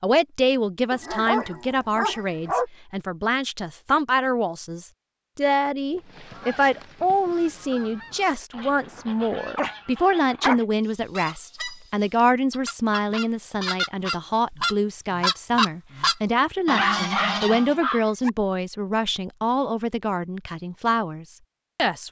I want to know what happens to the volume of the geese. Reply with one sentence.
The loudness of the geese goes up.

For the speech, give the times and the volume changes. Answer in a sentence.
The speech can be heard from 0.0 to 22.0 s, at a steady volume.